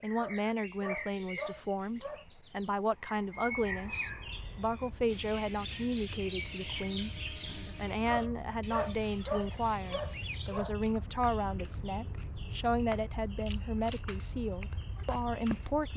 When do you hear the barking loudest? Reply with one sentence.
The loudest moment of the barking is at 9 seconds.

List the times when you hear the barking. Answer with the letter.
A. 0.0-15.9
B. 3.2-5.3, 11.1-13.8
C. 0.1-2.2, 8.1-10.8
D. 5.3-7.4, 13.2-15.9
C.